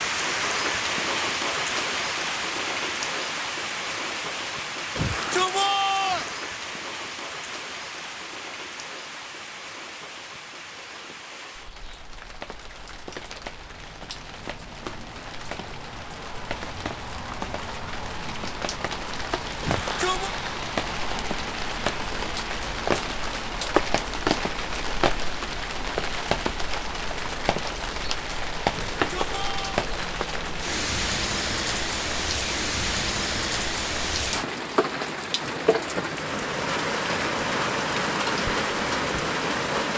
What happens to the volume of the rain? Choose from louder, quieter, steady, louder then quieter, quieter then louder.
quieter then louder.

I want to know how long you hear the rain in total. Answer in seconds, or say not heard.
40 s.